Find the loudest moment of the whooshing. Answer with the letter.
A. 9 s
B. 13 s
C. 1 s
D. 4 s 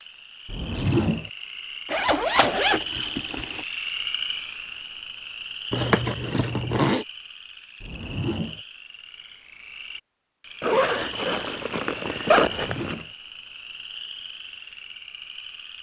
C.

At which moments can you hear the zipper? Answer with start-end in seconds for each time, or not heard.
1.9-3.6, 5.7-7.0, 10.6-13.0.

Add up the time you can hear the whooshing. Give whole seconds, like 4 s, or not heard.
2 s.